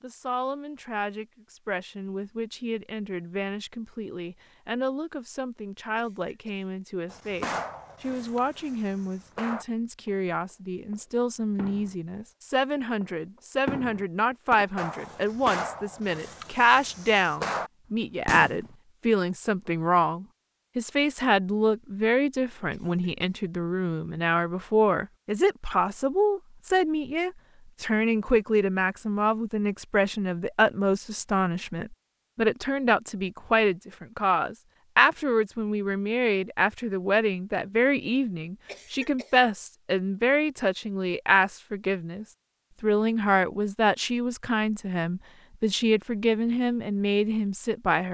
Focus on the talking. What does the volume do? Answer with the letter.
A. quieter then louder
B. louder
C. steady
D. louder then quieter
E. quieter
B.